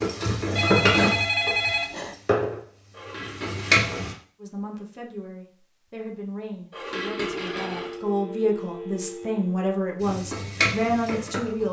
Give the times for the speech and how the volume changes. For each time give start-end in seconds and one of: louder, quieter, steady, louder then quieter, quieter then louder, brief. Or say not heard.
4.4-11.6 louder.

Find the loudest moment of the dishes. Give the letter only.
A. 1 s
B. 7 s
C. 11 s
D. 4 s
B.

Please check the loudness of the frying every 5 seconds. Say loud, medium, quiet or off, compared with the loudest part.
loud, off, medium.